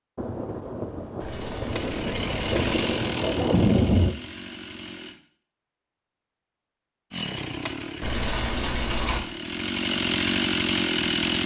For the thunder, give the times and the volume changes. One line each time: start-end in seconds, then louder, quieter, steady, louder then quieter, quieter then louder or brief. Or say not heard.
0.1-4.2 louder.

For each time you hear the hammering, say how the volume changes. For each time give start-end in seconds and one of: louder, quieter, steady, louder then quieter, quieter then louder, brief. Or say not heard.
not heard.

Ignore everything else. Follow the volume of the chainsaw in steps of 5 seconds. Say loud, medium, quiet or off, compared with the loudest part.
medium, medium, loud.